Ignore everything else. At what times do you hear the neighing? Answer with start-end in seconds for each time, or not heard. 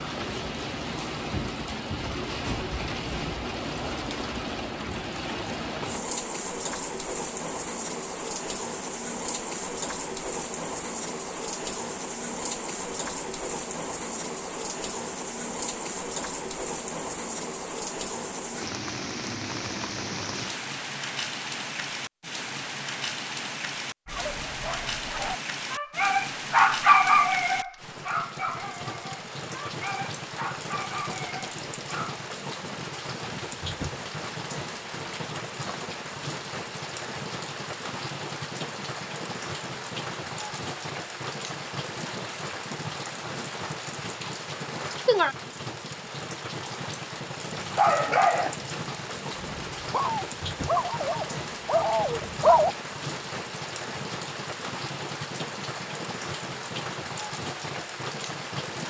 not heard.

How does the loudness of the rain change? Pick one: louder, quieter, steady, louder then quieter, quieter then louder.
steady.